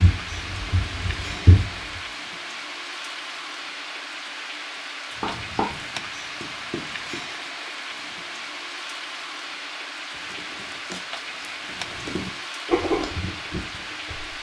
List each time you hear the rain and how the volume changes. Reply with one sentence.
You can hear the rain from 0.0 to 14.3 s, at a steady volume.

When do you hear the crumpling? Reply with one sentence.
The crumpling can be heard from 10.1 to 12.3 s.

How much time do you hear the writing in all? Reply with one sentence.
The writing can be heard for 7 seconds in total.